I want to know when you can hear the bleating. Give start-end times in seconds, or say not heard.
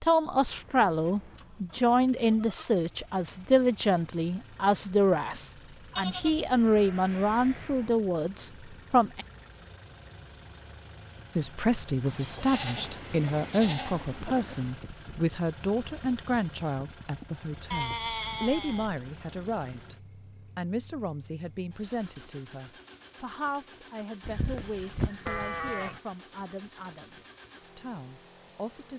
2.3-2.9, 6.0-7.9, 12.0-14.8, 17.7-18.9, 24.2-26.0.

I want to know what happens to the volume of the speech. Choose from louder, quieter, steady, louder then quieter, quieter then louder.
quieter.